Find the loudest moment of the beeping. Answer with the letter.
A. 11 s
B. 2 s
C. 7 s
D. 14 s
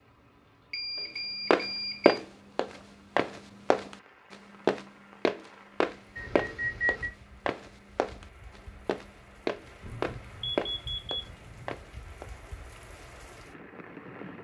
C.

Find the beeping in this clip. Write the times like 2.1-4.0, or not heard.
0.7-2.2, 6.2-7.1, 9.8-11.8.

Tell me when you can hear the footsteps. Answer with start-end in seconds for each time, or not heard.
1.5-12.3.